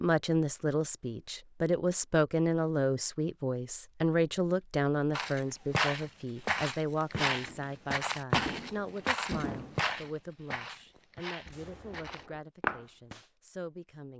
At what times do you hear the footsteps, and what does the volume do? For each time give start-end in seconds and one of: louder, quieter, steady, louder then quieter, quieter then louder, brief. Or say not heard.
5.1-12.8 quieter.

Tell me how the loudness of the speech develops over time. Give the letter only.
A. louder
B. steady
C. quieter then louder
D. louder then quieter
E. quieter
E.